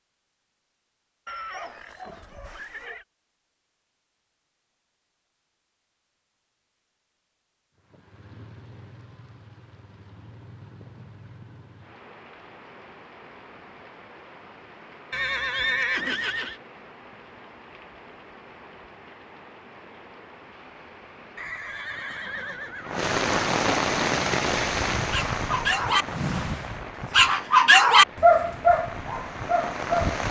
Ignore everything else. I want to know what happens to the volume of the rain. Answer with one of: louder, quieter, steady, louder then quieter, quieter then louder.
louder then quieter.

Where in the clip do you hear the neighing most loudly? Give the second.
16 s.